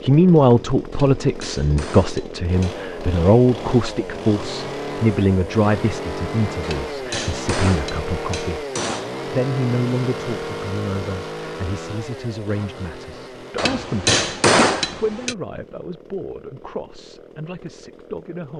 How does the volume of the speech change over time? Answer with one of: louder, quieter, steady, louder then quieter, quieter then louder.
quieter.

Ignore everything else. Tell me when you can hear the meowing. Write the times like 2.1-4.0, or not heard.
not heard.